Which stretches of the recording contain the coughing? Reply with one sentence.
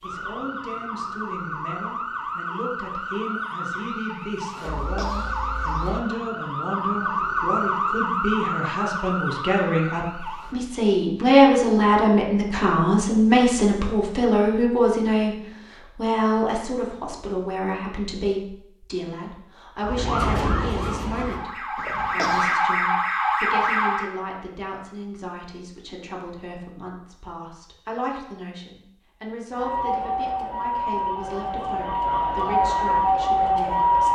You can hear the coughing from 4.8 to 5.3 s and from 21.8 to 22.6 s.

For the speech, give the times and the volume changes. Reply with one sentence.
You can hear the speech from 0.0 to 34.0 s, getting louder then quieter.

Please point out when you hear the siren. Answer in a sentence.
The siren can be heard from 0.0 to 10.6 s, from 19.8 to 24.1 s and from 29.5 to 34.0 s.